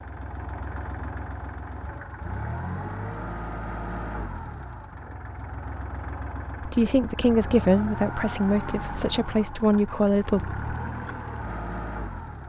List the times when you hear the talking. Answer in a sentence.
The talking can be heard from 6.7 to 10.5 s.